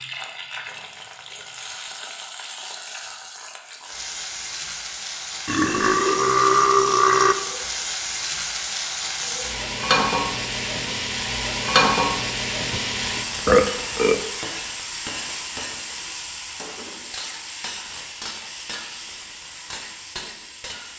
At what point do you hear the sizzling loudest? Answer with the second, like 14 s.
12 s.